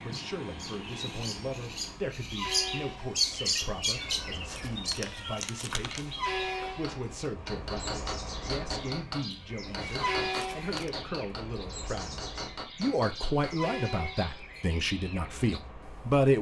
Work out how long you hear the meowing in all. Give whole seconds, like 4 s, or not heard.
3 s.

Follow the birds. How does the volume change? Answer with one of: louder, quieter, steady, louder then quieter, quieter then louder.
quieter.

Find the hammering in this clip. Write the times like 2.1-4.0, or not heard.
6.8-13.7.